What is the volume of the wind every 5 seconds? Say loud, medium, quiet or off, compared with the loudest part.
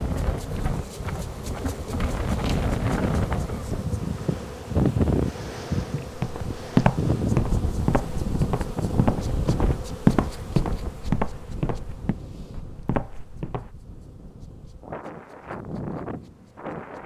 loud, loud, quiet, medium.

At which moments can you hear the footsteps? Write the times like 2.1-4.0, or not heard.
6.2-13.7.